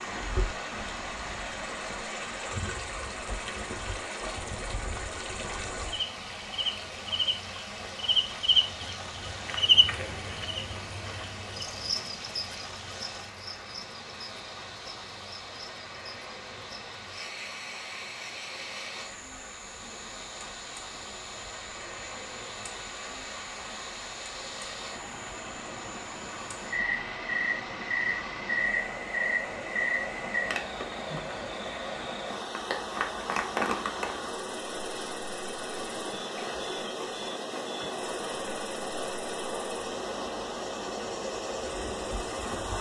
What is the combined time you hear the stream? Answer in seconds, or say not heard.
43 s.